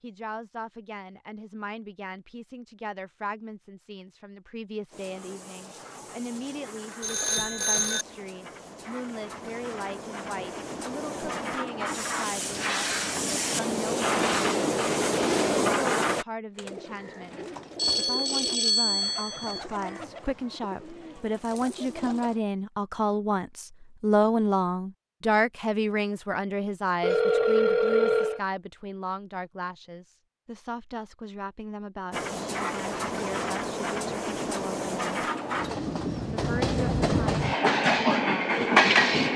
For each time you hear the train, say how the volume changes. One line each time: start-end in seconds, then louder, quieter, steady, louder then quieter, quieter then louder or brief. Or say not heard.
4.9-16.2 louder
32.1-39.3 louder.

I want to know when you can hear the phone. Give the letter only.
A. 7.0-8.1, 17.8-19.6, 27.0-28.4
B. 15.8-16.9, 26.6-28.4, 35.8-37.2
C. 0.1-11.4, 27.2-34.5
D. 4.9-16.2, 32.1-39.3
A.